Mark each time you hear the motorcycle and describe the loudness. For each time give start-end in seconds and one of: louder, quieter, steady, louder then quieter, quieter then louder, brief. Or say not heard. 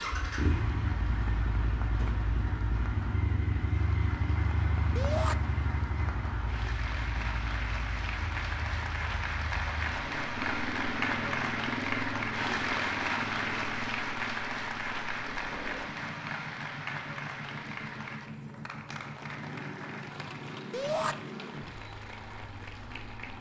0.0-23.3 quieter.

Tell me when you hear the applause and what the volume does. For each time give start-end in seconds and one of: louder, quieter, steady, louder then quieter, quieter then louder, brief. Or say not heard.
0.0-23.3 louder then quieter.